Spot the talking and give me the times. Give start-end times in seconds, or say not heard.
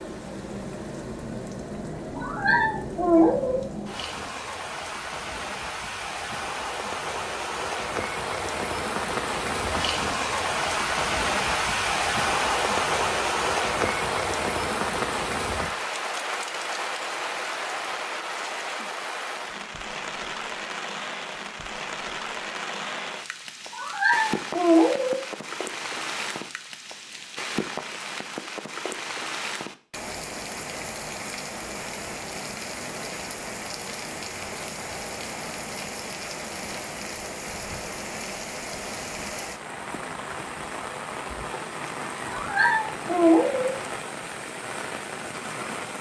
not heard.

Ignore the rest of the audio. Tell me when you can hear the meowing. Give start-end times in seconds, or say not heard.
2.1-3.6, 23.7-25.2, 42.2-43.8.